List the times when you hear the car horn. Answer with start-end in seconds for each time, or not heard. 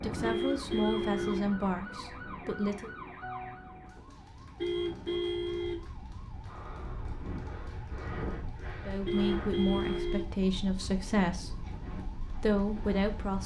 0.2-1.6, 4.5-5.9, 9.1-10.3.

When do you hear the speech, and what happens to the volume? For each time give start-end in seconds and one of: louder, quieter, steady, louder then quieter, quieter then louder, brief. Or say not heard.
0.0-2.9 brief
8.8-13.4 quieter then louder.